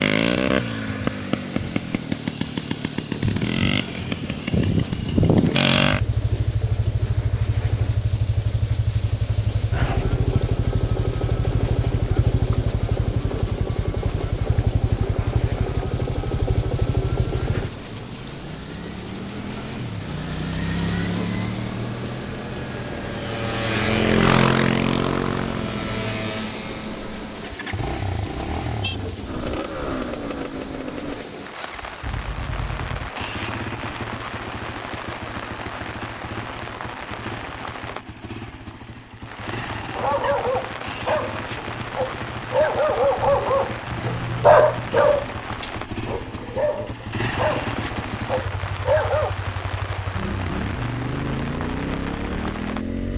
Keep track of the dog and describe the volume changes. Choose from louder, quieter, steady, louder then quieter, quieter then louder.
louder then quieter.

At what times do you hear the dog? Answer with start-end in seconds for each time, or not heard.
39.9-49.3.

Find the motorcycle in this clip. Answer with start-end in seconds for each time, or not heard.
0.0-53.1.